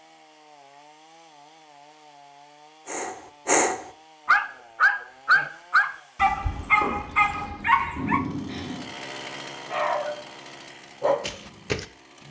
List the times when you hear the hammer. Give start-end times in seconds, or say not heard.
6.6-8.9.